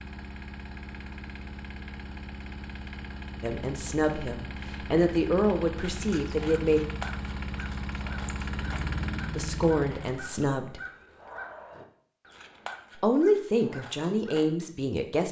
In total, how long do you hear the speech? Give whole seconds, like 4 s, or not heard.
7 s.